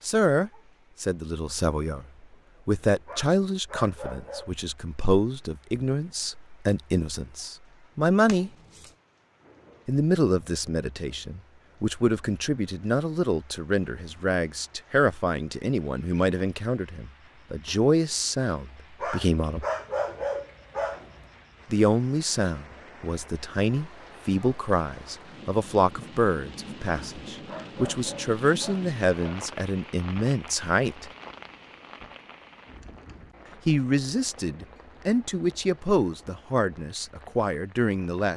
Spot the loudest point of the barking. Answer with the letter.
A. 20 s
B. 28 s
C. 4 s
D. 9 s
A.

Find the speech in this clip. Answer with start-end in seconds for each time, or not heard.
0.0-2.0, 2.6-8.5, 9.8-19.6, 21.7-31.1, 33.6-38.3.